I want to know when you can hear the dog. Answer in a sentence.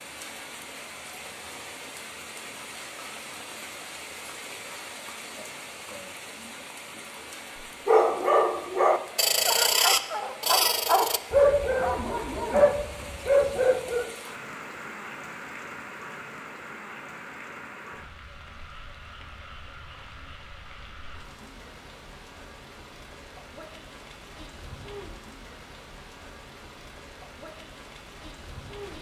You can hear the dog from 7.8 to 14.1 s.